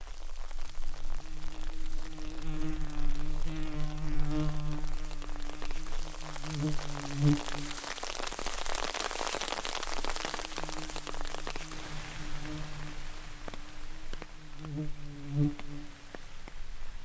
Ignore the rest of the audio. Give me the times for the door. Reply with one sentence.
The door can't be heard in this clip.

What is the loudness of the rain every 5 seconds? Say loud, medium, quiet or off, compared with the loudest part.
quiet, loud, medium, quiet.